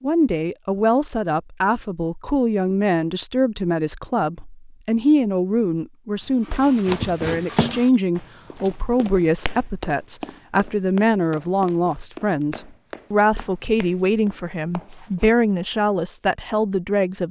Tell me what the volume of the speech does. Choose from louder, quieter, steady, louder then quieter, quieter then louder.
steady.